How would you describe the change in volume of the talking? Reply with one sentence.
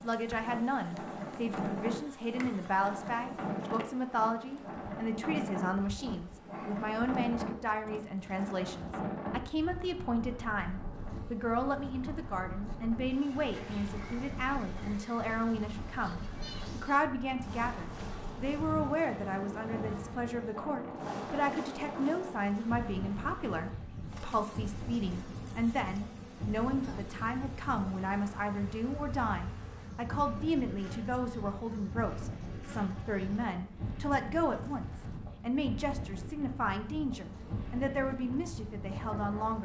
The loudness of the talking stays about the same.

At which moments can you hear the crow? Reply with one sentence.
You can't hear the crow here.